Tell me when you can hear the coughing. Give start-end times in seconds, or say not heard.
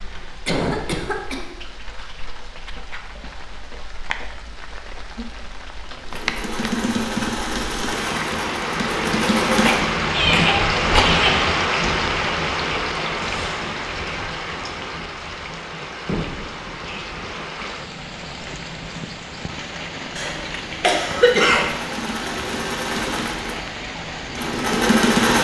0.5-1.6, 9.6-11.3, 20.1-21.8.